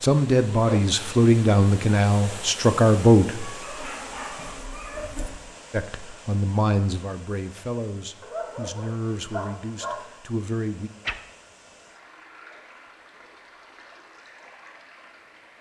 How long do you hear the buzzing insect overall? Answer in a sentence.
The buzzing insect can be heard for 2 seconds in total.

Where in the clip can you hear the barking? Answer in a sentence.
You can hear the barking from 3.4 to 5.3 s and from 8.2 to 10.0 s.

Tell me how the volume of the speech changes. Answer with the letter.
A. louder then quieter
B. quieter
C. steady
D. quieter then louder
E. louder
B.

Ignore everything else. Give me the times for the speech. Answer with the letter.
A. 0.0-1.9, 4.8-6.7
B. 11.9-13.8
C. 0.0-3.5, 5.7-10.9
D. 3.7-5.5
C.